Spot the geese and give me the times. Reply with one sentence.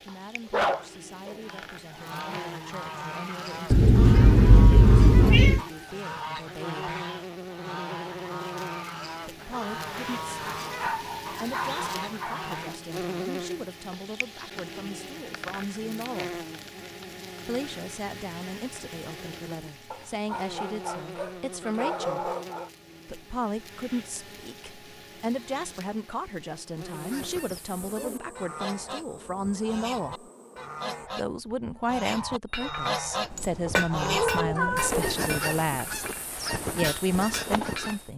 The geese can be heard from 1.4 to 12.8 s and from 26.9 to 38.1 s.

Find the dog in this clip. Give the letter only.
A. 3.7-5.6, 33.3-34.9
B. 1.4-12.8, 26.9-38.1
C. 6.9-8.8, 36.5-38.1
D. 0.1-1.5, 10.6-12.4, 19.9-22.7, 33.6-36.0
D.